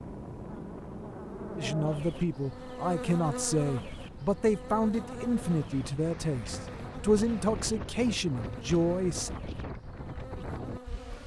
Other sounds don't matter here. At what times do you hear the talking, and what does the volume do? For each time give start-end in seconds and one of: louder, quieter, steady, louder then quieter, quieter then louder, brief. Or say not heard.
1.6-9.3 steady.